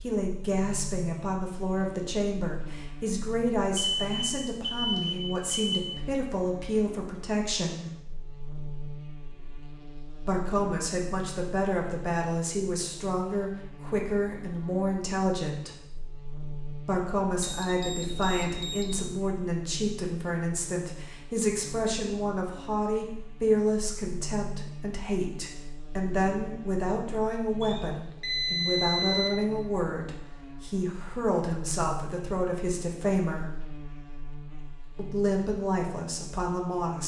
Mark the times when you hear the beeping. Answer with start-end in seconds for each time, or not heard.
3.8-5.8, 17.4-19.1, 27.6-29.3.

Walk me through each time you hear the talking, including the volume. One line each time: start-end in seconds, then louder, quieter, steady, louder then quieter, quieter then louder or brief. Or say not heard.
0.0-7.8 steady
10.2-15.8 steady
16.9-33.5 steady
35.0-37.0 brief.